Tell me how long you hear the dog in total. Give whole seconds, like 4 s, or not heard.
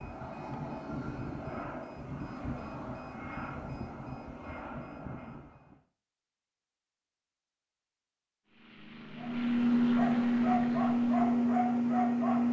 3 s.